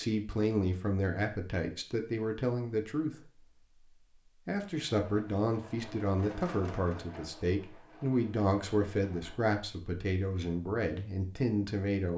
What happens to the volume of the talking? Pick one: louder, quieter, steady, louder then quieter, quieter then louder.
steady.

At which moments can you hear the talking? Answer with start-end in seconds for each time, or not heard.
0.0-3.3, 4.5-12.1.